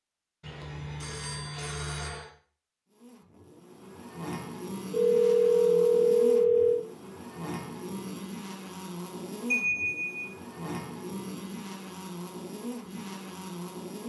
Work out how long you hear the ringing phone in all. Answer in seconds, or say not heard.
5 s.